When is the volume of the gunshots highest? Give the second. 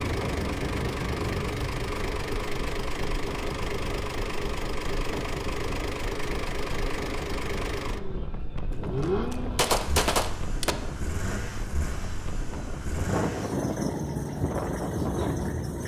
10 s.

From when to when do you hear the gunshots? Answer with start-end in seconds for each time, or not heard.
8.7-10.8.